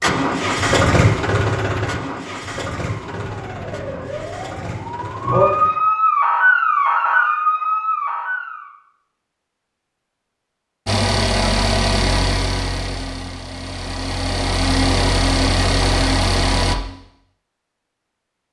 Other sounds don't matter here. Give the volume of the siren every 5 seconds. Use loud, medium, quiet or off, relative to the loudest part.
quiet, loud, off, off.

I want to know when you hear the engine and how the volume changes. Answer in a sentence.
You can hear the engine from 0.0 to 5.8 s, getting quieter; and from 10.8 to 16.8 s, getting quieter then louder.